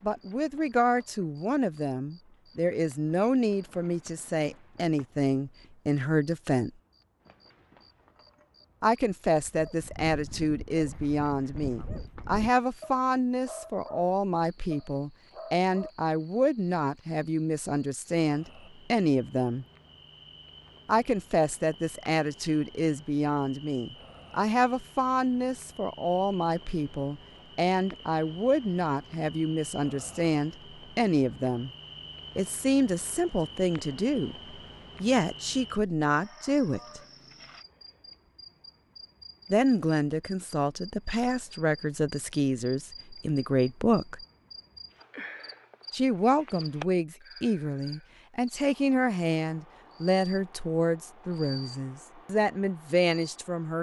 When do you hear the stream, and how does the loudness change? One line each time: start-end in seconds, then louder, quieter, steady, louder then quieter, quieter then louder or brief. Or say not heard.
not heard.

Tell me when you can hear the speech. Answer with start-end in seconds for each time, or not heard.
0.0-6.7, 8.8-19.6, 20.9-31.7, 32.4-37.0, 39.5-44.2, 45.9-53.7.